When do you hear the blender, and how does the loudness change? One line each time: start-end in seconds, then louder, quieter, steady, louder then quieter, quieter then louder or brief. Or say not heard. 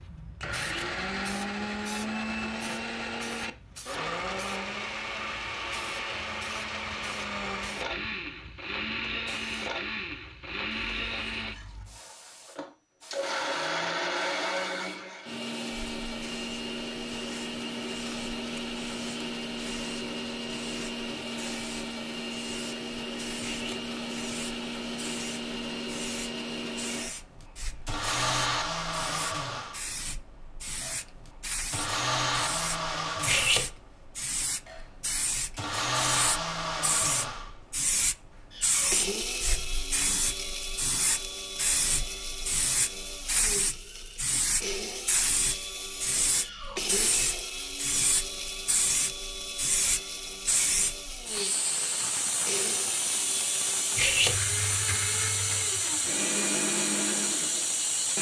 0.4-58.1 steady.